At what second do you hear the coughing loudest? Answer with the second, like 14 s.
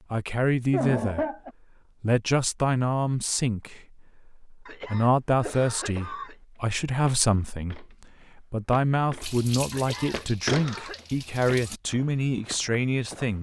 1 s.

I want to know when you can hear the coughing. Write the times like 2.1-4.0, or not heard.
0.7-1.5, 4.7-6.3, 9.7-11.1.